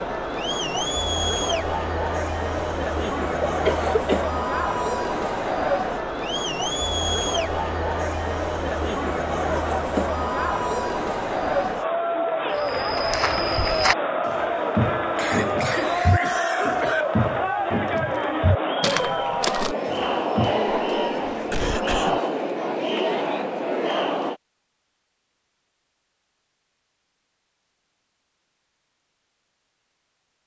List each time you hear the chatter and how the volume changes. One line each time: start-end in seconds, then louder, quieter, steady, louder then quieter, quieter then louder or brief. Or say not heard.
0.0-24.4 steady.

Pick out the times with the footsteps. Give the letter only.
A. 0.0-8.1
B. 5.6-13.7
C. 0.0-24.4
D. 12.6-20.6
D.